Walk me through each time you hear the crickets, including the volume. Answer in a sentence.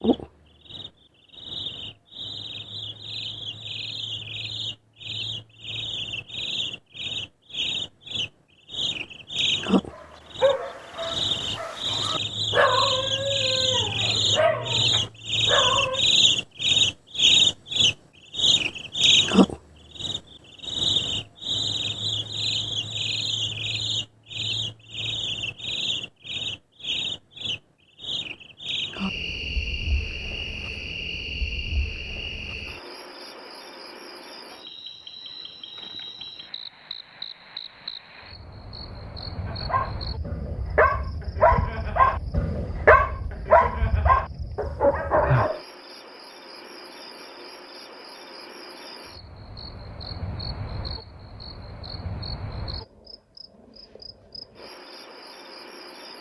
The crickets can be heard from 0.0 to 56.1 s, getting louder then quieter.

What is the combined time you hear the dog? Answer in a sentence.
You can hear the dog for 12 seconds altogether.